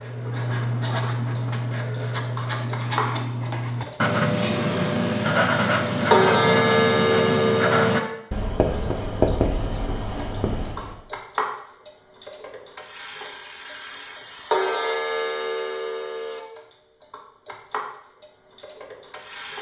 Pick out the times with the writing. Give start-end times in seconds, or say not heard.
0.0-11.0.